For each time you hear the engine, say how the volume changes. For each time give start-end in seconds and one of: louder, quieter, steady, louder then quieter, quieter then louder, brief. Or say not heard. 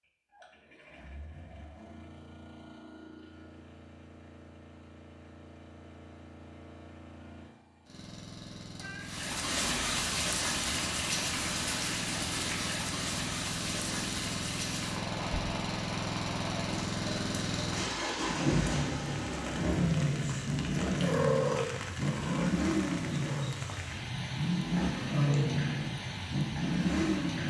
0.0-27.4 louder.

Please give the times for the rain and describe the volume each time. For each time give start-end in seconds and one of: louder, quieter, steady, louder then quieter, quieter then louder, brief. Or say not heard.
9.0-27.4 quieter.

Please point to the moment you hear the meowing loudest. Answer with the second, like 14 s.
21 s.